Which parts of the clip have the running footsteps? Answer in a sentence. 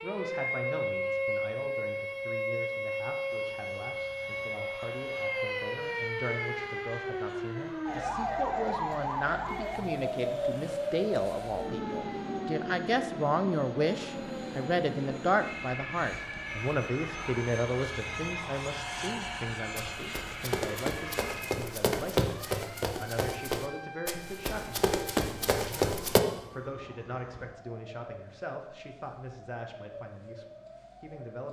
You can hear the running footsteps from 19.8 to 26.2 s.